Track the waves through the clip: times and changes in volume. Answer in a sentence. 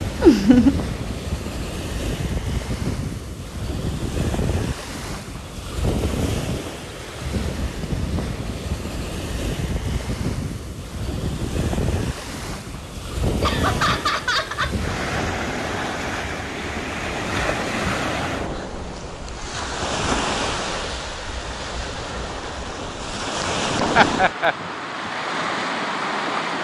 You can hear the waves from 0.0 to 26.5 s, at a steady volume.